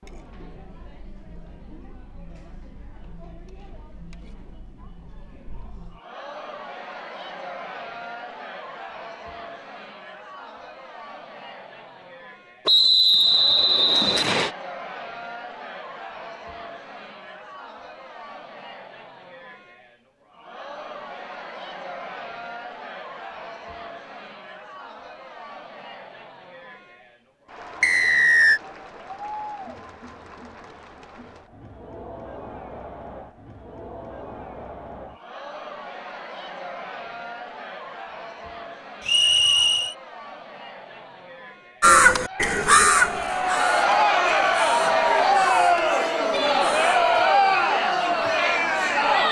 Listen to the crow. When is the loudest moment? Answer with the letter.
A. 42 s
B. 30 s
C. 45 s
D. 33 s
A.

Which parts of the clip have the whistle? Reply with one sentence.
The whistle can be heard from 12.7 to 14.5 s, from 27.8 to 28.6 s and from 39.0 to 40.0 s.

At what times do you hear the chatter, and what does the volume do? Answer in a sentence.
The chatter can be heard from 0.0 to 49.2 s, getting louder.